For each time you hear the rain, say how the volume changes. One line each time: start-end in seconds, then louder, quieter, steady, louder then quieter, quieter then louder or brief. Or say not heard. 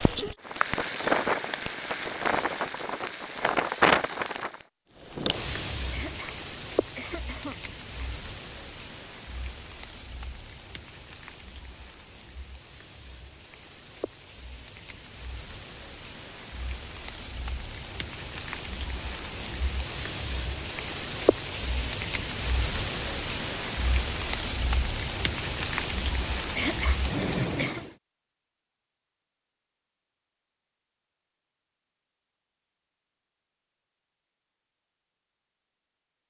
0.0-27.9 quieter then louder.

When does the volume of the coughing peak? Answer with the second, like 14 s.
27 s.